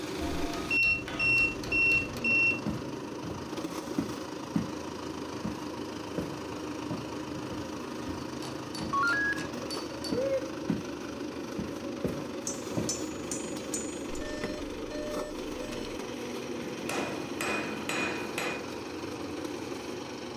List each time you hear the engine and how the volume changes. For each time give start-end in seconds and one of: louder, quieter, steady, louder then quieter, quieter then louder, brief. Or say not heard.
0.0-20.3 steady.